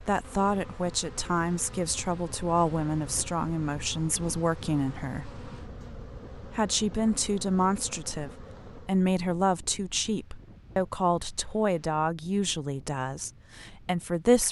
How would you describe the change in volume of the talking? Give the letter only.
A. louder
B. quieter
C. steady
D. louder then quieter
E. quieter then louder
C.